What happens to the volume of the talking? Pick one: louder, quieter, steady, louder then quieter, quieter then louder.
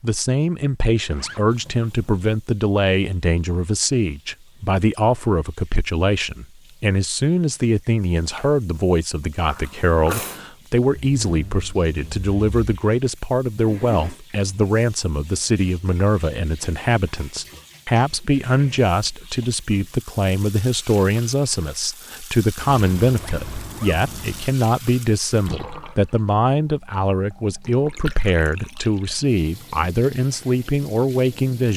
steady.